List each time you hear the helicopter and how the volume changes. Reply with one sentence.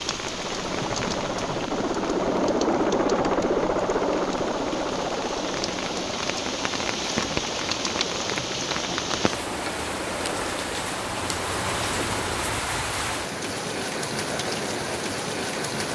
You can hear the helicopter from 0.0 to 12.8 s, getting quieter.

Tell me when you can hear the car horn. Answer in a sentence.
You can't hear the car horn here.